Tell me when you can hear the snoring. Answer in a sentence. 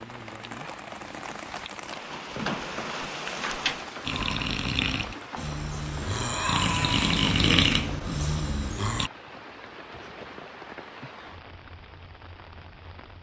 You can hear the snoring from 4.0 to 9.1 s.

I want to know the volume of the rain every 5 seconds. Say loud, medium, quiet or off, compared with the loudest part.
loud, medium, medium.